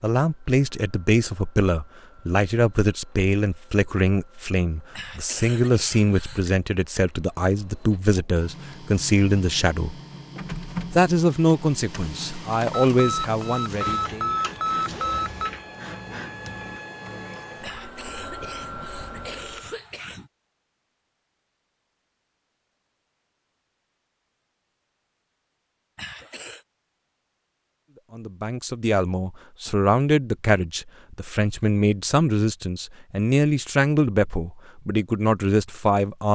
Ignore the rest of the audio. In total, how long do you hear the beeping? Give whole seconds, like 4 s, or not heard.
3 s.